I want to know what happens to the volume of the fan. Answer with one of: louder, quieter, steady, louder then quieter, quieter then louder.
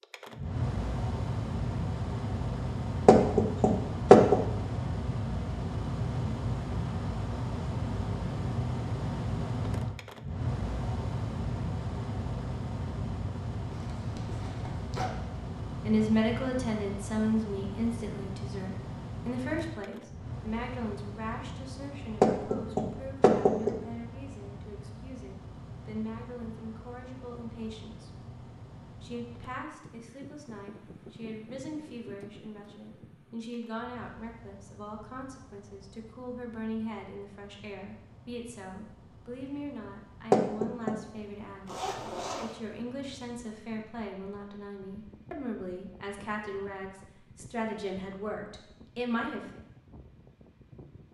quieter.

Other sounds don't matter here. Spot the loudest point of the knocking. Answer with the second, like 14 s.
4 s.